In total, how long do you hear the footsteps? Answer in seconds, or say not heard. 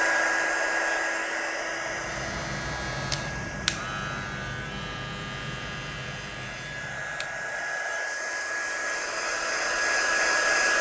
not heard.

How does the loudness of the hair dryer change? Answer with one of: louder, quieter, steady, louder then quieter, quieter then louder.
quieter then louder.